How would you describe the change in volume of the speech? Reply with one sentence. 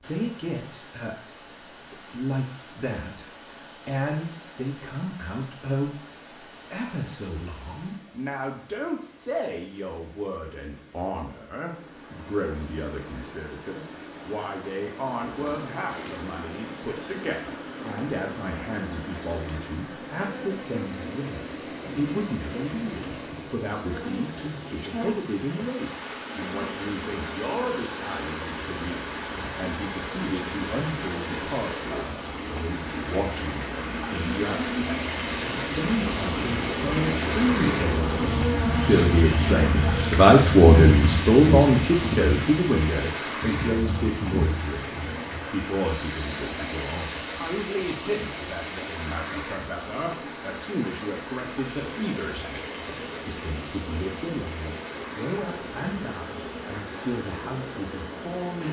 The loudness of the speech goes up, then down.